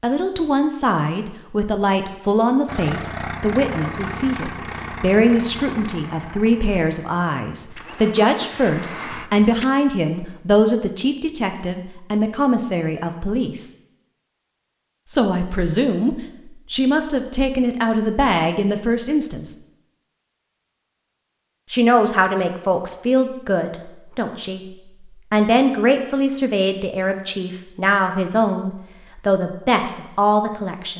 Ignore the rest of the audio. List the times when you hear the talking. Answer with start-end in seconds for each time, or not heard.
0.0-13.7, 15.1-19.6, 21.7-30.9.